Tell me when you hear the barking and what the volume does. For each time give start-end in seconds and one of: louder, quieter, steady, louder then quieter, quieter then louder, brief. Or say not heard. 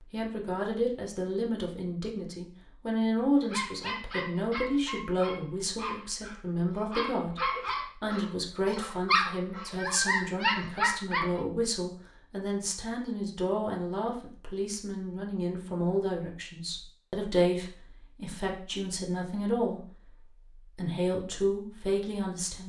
3.5-11.4 louder.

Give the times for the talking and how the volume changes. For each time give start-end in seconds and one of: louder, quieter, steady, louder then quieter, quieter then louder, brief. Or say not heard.
0.1-19.8 steady
20.6-22.6 brief.